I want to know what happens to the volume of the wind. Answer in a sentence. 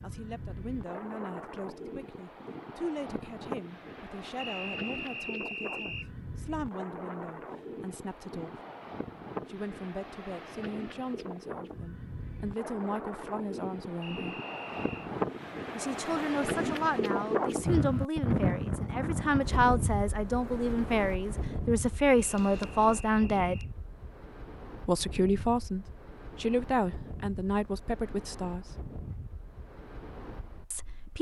The loudness of the wind goes up, then down.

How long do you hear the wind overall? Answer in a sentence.
You can hear the wind for 31 seconds altogether.